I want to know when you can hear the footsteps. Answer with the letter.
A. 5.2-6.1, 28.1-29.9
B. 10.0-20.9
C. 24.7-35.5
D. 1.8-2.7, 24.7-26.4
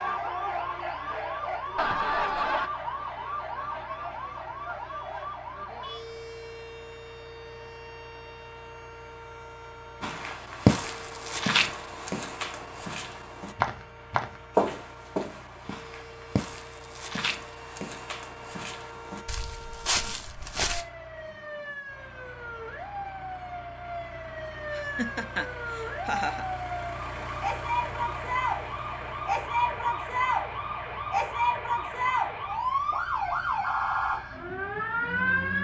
B.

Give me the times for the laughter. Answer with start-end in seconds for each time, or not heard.
1.8-2.7, 24.7-26.4.